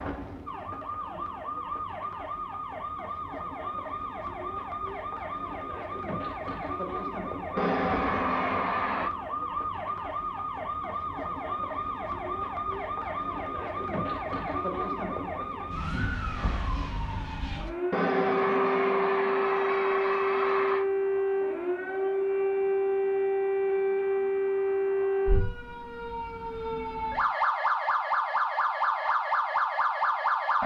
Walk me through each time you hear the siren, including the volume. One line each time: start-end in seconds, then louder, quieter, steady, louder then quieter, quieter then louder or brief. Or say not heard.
0.0-30.6 louder.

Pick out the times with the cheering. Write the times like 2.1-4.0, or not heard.
7.5-9.1, 17.9-20.9.